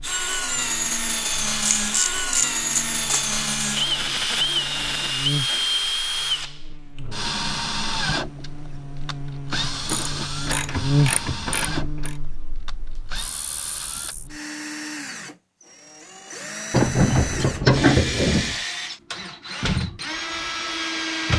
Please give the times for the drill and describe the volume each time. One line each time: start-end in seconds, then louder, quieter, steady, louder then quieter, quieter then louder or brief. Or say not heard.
0.0-21.3 quieter then louder.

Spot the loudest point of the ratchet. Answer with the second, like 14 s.
18 s.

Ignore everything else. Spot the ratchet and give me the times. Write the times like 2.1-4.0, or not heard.
1.8-3.2, 9.5-12.2, 16.7-18.6.